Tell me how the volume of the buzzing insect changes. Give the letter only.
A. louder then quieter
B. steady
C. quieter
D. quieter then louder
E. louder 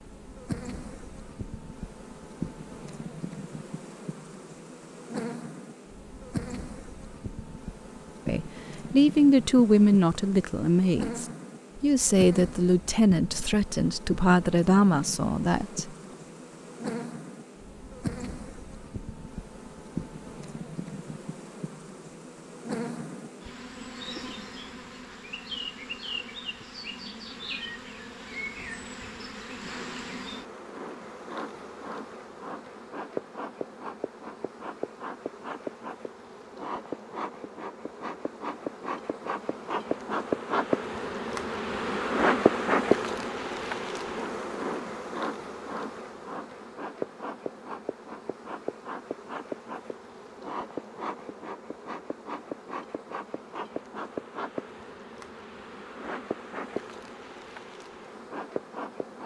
A.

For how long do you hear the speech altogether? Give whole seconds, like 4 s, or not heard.
8 s.